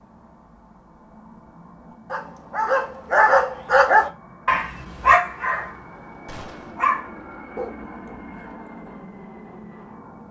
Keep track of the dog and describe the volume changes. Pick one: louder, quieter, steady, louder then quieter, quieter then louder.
quieter then louder.